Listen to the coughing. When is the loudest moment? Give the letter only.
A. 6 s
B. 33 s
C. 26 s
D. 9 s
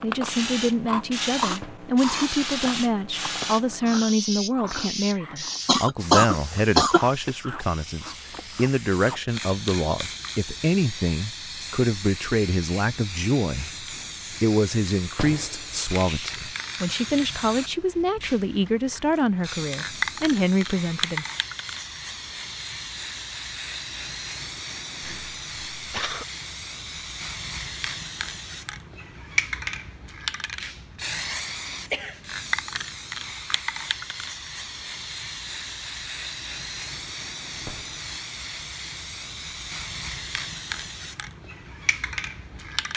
A.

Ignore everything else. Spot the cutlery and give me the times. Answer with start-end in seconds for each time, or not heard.
not heard.